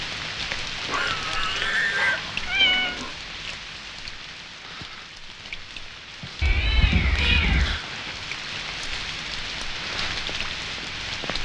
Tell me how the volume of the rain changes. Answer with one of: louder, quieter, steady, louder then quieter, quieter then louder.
quieter then louder.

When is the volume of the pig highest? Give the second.
2 s.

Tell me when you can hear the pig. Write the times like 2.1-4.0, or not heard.
0.8-3.1.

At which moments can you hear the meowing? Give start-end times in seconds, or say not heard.
1.9-3.0, 6.4-7.8.